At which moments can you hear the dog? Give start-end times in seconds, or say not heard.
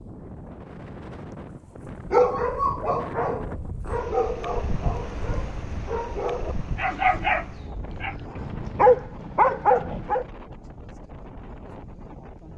2.1-10.2.